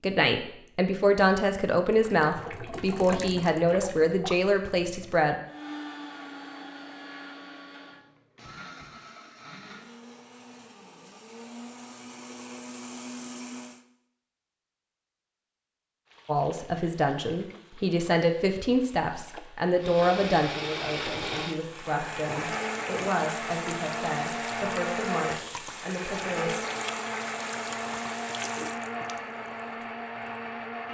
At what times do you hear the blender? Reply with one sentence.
The blender can be heard from 5.5 to 13.8 s and from 19.8 to 30.8 s.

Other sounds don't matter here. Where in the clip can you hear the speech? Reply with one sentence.
You can hear the speech from 0.0 to 5.3 s and from 16.2 to 26.6 s.